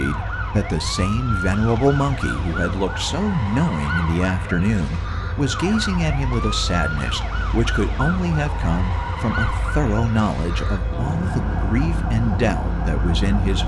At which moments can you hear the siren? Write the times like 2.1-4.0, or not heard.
0.0-13.6.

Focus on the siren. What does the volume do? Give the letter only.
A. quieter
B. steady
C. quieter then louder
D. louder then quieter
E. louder
B.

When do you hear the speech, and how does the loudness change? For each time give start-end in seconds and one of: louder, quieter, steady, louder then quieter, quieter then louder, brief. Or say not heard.
0.0-13.6 steady.